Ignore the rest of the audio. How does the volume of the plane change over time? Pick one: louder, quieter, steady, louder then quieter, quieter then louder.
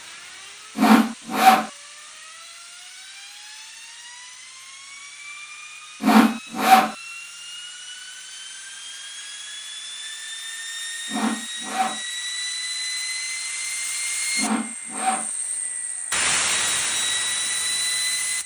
louder.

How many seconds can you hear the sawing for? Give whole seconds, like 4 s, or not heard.
4 s.